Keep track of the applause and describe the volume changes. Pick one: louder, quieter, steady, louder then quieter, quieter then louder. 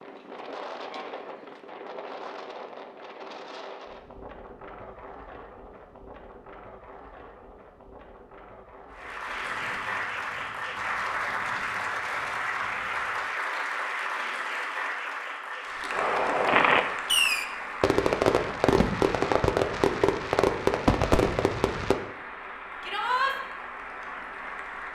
quieter.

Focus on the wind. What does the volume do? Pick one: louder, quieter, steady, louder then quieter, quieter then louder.
quieter.